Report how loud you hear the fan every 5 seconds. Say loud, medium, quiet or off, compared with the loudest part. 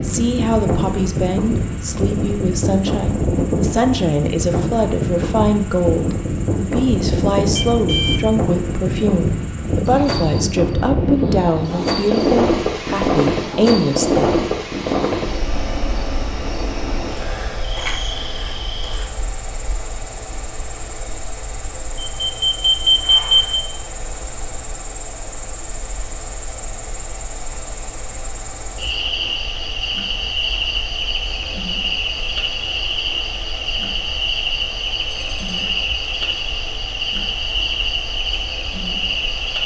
loud, loud, loud, medium, quiet, quiet, quiet, quiet.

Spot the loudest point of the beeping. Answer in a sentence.
The loudest moment of the beeping is at 23 seconds.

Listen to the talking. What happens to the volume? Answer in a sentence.
The loudness of the talking stays about the same.